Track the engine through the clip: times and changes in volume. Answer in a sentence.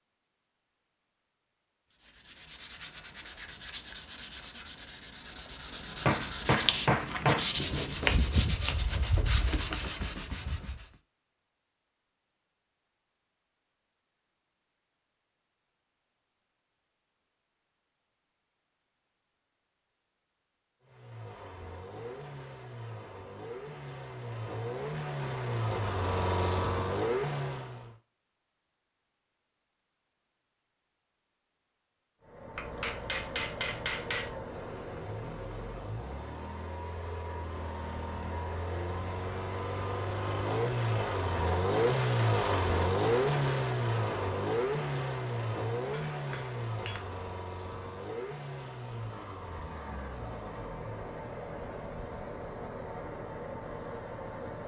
The engine can be heard from 20.8 to 27.9 s, getting louder; and from 32.2 to 54.6 s, getting louder then quieter.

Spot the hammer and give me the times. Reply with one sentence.
You can hear the hammer from 6.0 to 7.5 s, from 32.5 to 34.4 s and from 46.1 to 47.0 s.